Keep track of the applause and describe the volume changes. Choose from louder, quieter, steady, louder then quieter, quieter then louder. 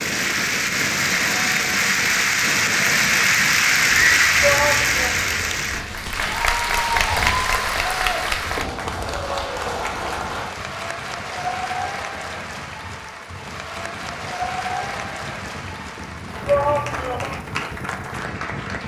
quieter.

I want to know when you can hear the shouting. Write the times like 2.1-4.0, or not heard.
4.4-5.2, 16.4-17.4.